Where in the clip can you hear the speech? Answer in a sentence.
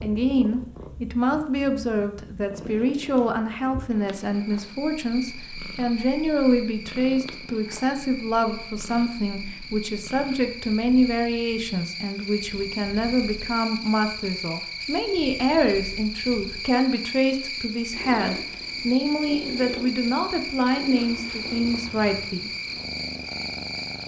You can hear the speech from 0.0 to 22.5 s.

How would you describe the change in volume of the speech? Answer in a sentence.
The loudness of the speech stays about the same.